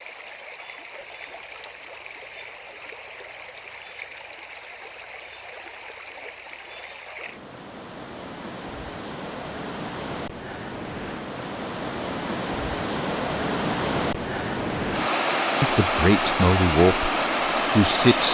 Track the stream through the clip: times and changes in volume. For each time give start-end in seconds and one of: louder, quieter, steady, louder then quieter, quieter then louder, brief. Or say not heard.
0.0-18.2 louder.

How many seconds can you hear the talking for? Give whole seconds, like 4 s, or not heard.
2 s.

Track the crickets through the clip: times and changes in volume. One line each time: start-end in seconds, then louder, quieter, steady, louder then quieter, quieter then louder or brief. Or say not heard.
not heard.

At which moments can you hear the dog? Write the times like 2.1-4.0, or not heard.
not heard.